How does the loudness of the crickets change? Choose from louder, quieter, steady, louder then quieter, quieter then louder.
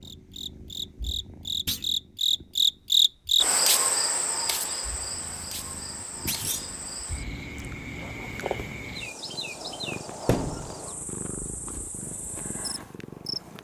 quieter.